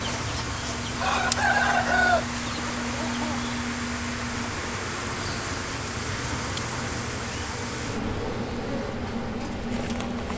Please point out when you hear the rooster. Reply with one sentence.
You can hear the rooster from 0.0 to 3.5 s.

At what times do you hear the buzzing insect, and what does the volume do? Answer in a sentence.
The buzzing insect can be heard from 0.0 to 10.3 s, at a steady volume.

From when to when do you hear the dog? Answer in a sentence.
You can't hear the dog here.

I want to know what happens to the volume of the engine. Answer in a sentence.
The volume of the engine stays about the same.